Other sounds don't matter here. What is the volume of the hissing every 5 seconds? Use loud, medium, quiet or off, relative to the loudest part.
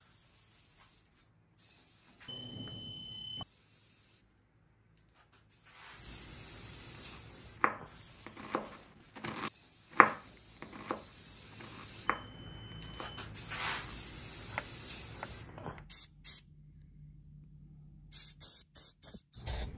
quiet, medium, loud, loud.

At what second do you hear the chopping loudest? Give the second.
10 s.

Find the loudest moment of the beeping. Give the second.
3 s.